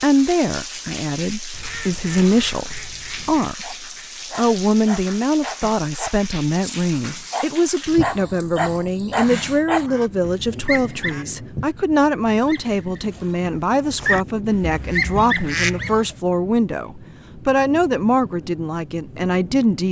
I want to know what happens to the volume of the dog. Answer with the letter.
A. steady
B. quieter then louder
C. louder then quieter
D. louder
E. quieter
D.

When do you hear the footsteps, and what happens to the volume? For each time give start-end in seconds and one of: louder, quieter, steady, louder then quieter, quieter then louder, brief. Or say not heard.
not heard.